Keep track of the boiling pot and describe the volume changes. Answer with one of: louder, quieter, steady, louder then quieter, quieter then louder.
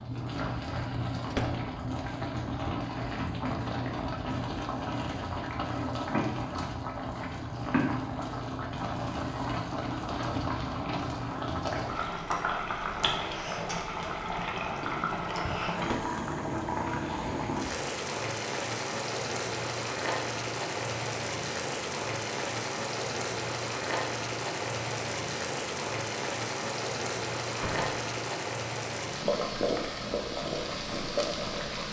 steady.